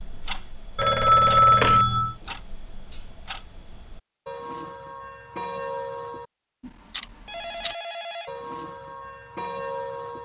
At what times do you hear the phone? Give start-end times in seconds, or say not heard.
0.8-2.1, 7.2-8.3.